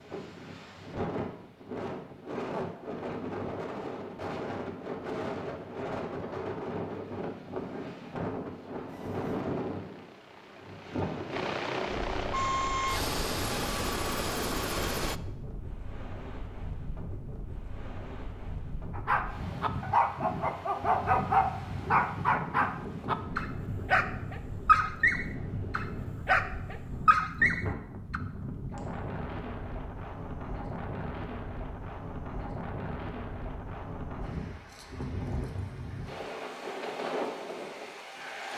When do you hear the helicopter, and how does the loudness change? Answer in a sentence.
The helicopter can be heard from 8.8 to 15.2 s, getting louder.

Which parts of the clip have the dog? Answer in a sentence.
You can hear the dog from 18.9 to 28.2 s.